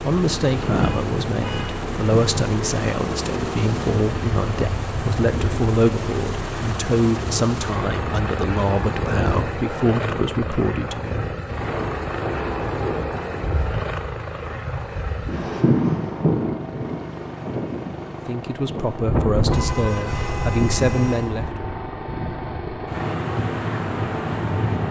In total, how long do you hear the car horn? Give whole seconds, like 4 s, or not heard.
3 s.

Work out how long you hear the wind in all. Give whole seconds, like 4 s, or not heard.
25 s.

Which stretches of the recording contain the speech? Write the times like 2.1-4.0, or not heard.
0.0-11.2, 18.2-21.6.